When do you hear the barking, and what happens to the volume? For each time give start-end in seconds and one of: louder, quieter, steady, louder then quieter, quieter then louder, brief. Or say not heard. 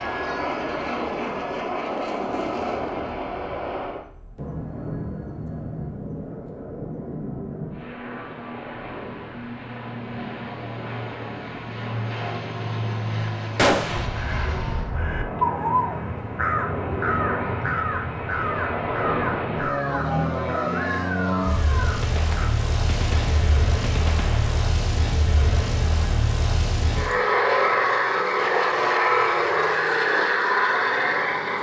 not heard.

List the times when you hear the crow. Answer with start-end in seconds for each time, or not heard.
13.8-22.5.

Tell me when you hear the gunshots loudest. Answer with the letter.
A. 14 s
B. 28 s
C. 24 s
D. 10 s
A.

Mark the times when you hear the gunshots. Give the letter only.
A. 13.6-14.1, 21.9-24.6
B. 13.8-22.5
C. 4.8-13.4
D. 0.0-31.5
A.